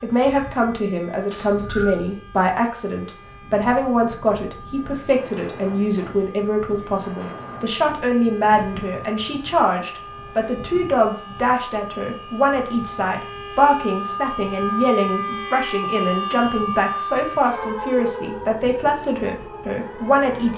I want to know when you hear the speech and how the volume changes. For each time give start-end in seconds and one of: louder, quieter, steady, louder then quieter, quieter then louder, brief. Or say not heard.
0.0-20.5 steady.